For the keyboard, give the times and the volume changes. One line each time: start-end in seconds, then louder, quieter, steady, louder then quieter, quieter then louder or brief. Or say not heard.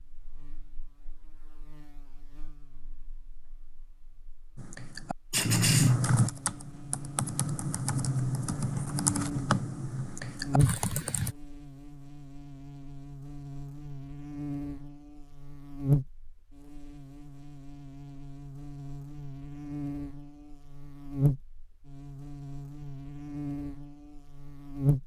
4.5-11.3 quieter.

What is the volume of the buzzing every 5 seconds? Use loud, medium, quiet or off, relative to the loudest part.
quiet, medium, loud, loud, loud.